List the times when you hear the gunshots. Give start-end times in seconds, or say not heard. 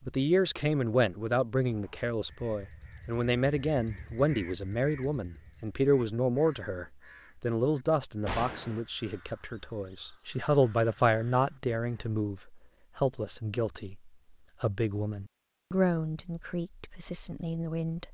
8.2-8.8.